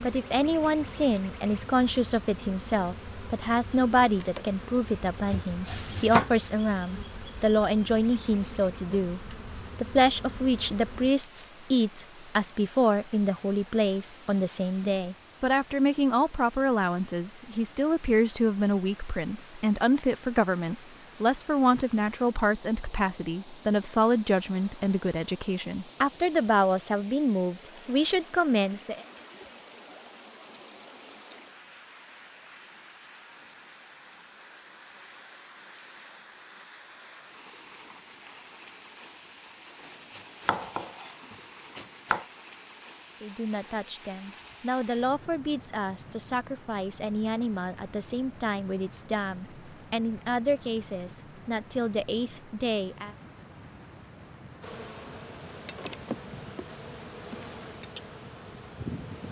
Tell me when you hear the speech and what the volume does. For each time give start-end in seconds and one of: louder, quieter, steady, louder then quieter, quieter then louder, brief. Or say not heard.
0.0-29.1 steady
43.2-53.1 steady.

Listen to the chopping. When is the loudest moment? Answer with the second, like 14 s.
6 s.